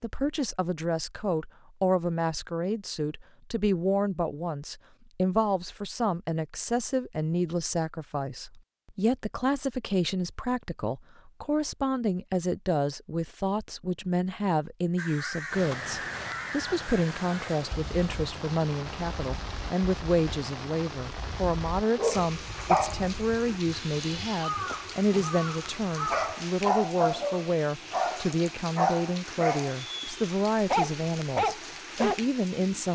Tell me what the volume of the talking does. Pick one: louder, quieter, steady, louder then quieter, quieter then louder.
steady.